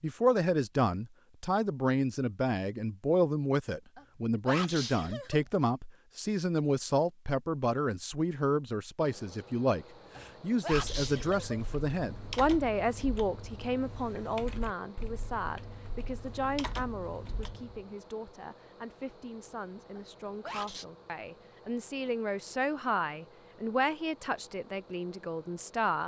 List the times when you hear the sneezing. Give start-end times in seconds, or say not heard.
4.0-5.5, 10.2-11.7, 19.9-20.9.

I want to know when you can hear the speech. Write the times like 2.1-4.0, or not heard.
0.0-26.0.